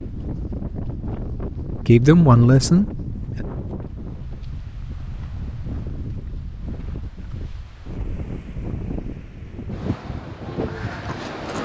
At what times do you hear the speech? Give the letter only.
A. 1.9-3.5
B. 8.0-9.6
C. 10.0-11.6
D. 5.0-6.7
A.